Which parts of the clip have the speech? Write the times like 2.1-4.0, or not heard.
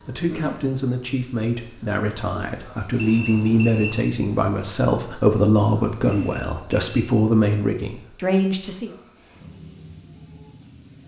0.1-8.9.